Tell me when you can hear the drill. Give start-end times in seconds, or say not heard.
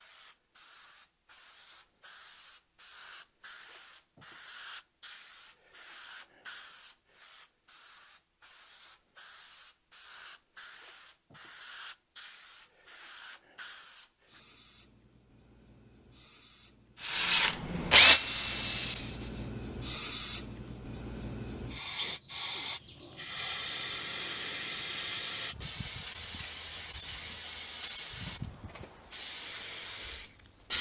17.0-19.5.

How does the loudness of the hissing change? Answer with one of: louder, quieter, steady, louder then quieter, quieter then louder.
louder.